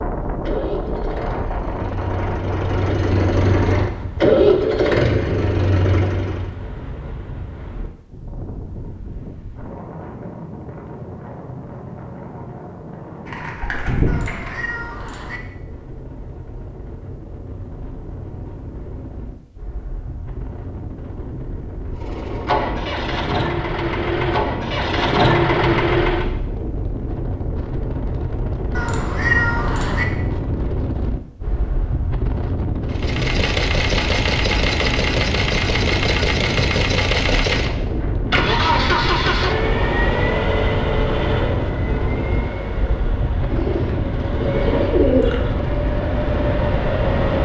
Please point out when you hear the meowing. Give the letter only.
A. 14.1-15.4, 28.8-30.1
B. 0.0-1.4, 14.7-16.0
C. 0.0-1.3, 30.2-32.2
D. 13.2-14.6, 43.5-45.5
A.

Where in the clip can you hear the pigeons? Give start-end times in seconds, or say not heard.
13.2-14.6, 43.5-45.5.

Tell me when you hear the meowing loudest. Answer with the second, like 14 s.
29 s.